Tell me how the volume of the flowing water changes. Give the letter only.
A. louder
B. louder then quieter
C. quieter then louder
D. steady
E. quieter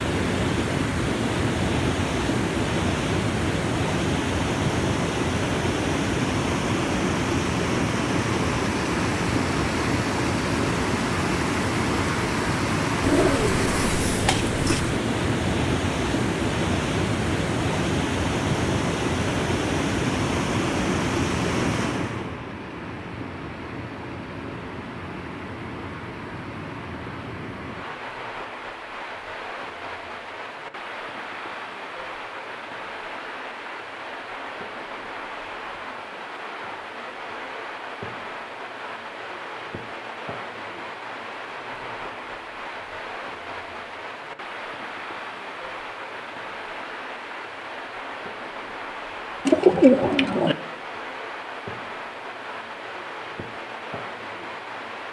E.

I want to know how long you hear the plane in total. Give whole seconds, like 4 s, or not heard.
not heard.